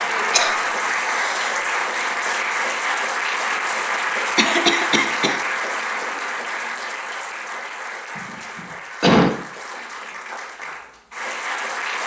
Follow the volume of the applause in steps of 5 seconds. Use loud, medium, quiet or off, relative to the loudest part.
loud, medium, medium.